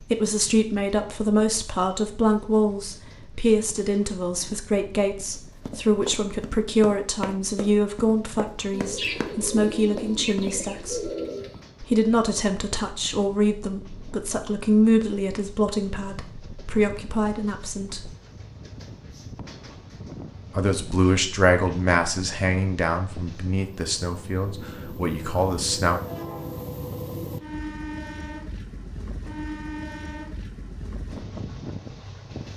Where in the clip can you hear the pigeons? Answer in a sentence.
The pigeons can be heard from 8.7 to 11.6 s.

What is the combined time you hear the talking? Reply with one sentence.
The talking can be heard for 23 seconds in total.